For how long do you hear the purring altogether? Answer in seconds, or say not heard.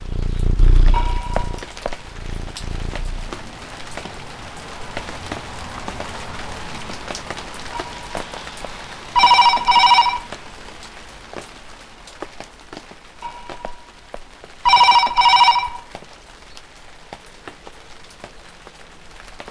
3 s.